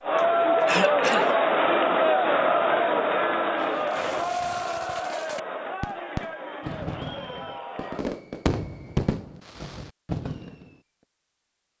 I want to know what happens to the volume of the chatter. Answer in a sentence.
The volume of the chatter goes down.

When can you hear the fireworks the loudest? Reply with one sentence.
The volume of the fireworks peaks at 9 seconds.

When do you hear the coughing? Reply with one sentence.
The coughing can be heard from 0.1 to 1.4 s.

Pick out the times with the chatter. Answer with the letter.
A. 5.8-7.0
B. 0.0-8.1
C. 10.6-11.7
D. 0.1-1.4
B.